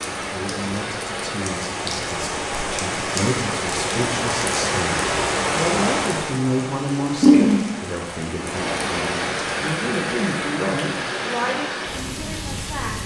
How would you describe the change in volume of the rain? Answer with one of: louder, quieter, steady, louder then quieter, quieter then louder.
louder then quieter.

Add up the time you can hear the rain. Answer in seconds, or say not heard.
13 s.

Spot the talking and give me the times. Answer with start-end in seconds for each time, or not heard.
0.2-12.9.